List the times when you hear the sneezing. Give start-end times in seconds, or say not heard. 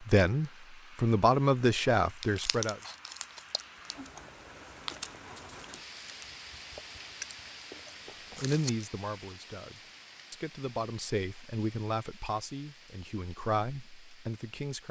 not heard.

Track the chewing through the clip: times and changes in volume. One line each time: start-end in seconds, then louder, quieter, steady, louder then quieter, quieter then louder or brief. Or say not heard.
2.2-8.7 quieter then louder.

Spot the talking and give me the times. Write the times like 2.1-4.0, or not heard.
0.0-2.8, 8.3-14.8.